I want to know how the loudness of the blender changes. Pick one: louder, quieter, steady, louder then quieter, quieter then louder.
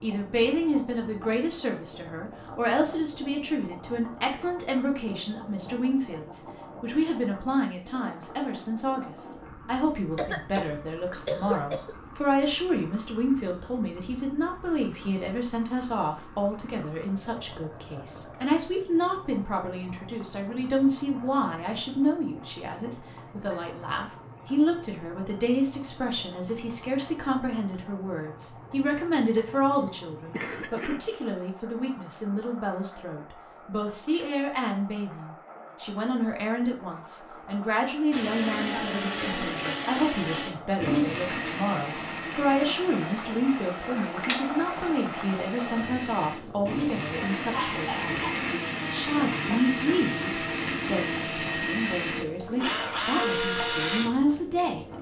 quieter then louder.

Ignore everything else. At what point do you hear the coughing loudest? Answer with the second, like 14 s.
11 s.